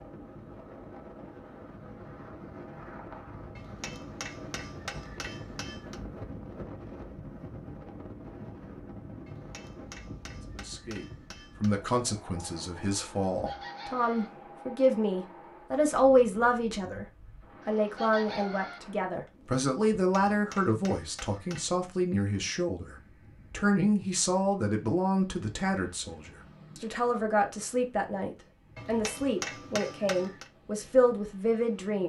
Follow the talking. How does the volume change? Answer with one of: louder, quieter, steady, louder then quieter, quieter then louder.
steady.